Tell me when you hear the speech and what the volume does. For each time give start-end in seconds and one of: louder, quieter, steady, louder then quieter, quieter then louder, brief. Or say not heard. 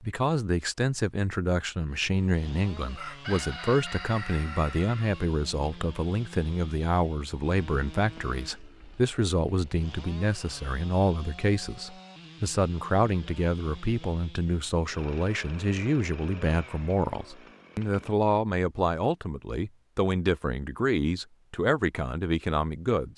0.0-23.1 steady.